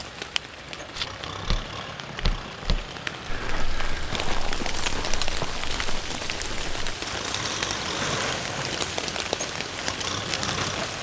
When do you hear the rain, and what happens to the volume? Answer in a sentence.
You can hear the rain from 0.0 to 10.9 s, getting louder.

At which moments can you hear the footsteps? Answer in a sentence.
The footsteps can be heard from 0.9 to 6.8 s.